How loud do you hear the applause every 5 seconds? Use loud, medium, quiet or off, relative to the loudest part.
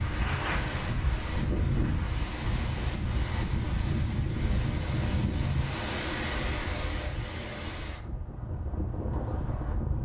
loud, off.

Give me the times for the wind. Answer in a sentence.
The wind can be heard from 0.0 to 10.0 s.